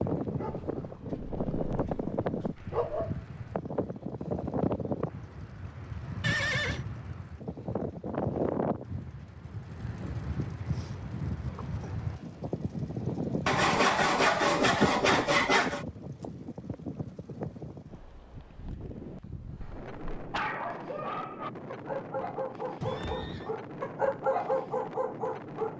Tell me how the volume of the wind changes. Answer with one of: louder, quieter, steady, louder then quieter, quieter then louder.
quieter.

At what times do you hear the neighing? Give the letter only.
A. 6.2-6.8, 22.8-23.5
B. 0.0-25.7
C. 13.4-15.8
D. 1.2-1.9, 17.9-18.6
A.